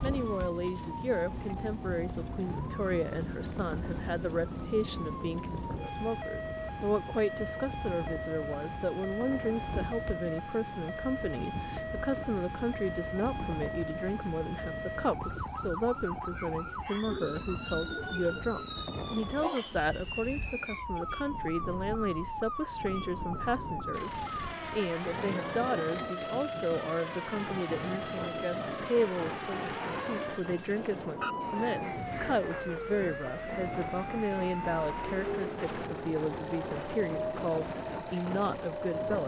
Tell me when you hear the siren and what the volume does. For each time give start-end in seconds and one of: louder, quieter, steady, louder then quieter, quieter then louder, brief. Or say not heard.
0.0-39.2 steady.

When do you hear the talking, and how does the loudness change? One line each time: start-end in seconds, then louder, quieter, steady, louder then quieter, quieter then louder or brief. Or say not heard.
0.0-39.2 steady.